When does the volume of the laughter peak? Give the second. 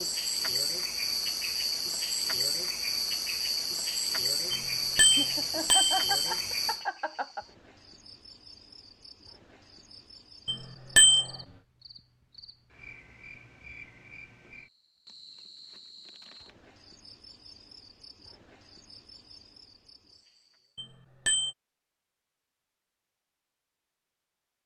6 s.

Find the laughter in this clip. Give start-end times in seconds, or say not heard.
5.2-7.5.